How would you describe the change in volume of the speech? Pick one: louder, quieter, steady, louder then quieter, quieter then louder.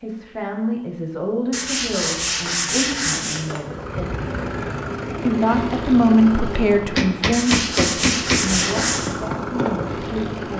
louder then quieter.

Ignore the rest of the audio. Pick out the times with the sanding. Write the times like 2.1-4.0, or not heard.
1.5-3.4, 7.3-9.1.